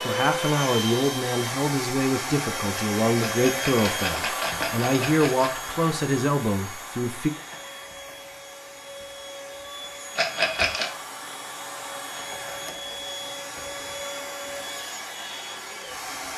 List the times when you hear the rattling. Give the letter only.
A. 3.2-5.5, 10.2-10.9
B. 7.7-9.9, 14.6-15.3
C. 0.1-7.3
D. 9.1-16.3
A.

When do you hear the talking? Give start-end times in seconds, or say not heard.
0.1-7.3.